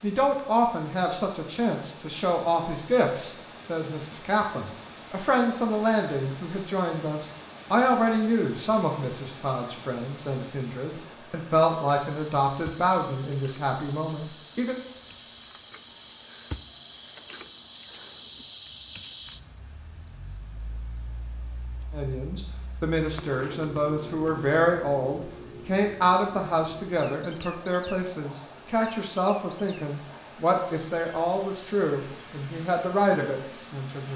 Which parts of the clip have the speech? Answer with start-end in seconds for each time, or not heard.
0.0-14.8, 21.9-34.1.